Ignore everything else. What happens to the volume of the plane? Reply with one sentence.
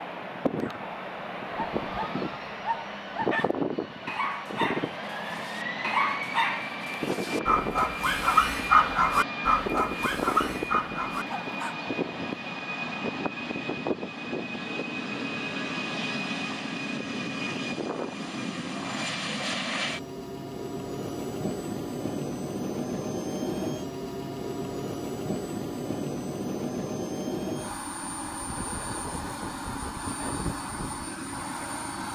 The volume of the plane stays about the same.